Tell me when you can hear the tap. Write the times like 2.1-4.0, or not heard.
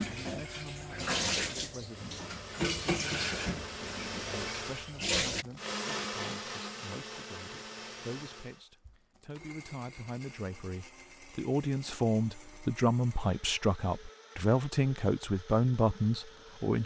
0.0-5.5.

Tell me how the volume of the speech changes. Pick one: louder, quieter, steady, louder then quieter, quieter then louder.
louder.